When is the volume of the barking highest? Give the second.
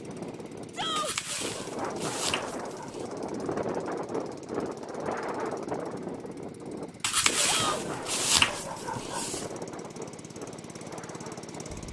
8 s.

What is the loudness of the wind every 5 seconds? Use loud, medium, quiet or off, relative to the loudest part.
loud, loud, medium.